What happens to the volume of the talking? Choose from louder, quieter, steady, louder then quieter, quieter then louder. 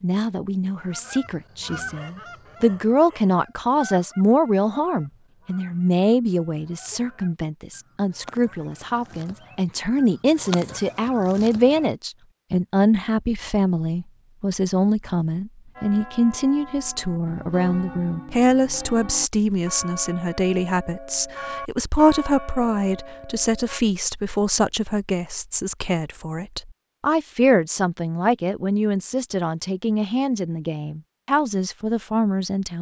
steady.